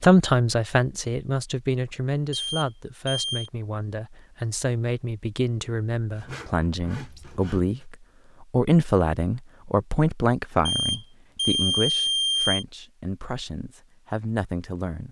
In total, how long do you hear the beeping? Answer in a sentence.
You can hear the beeping for 3 seconds altogether.